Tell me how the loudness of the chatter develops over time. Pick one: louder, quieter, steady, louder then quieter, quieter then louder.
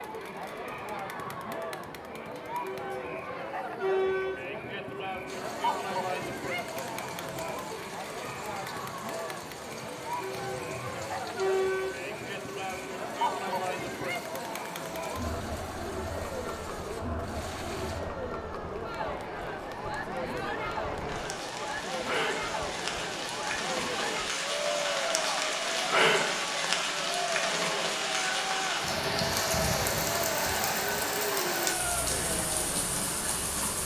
steady.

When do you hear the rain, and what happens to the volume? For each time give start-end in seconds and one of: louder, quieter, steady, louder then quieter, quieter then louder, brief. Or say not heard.
5.2-33.8 louder.